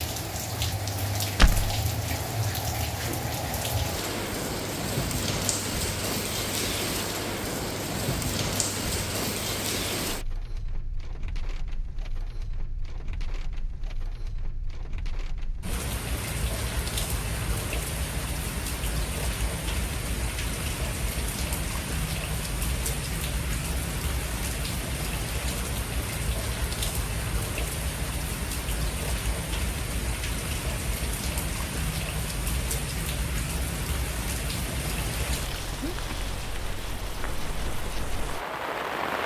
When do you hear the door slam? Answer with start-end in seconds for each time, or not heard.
1.4-1.8.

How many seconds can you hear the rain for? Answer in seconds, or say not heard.
39 s.